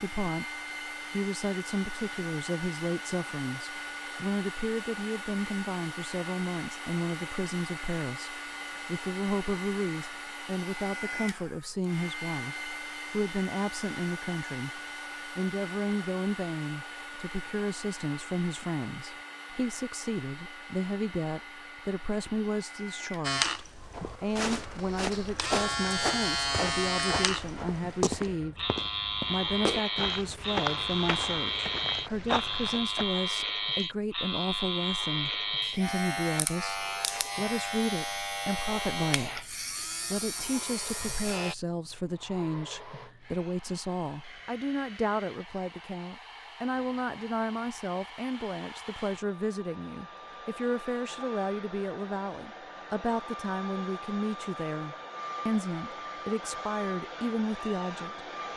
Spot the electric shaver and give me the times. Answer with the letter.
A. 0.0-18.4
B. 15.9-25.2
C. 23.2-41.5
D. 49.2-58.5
C.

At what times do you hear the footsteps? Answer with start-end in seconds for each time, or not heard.
23.8-33.0.